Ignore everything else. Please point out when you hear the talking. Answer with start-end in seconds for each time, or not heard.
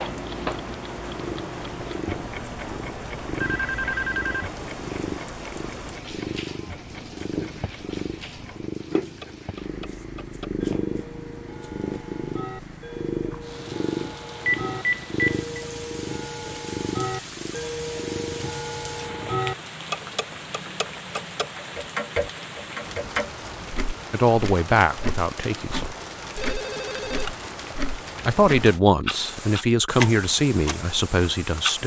24.1-25.9, 28.2-31.8.